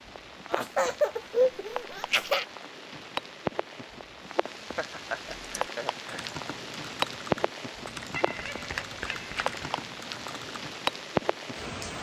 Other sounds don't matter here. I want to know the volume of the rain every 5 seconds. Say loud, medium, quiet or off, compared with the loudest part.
medium, loud, loud.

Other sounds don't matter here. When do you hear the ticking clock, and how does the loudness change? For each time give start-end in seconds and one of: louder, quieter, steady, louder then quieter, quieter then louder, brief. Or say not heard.
not heard.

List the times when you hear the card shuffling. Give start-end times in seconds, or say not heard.
8.3-9.5.